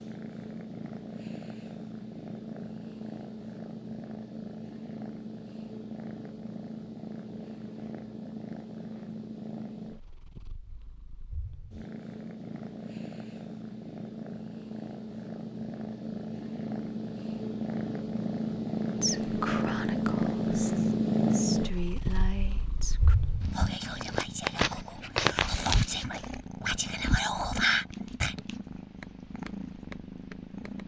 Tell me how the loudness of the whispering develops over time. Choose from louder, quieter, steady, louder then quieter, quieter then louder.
louder.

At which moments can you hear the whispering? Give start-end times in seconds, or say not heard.
19.0-28.4.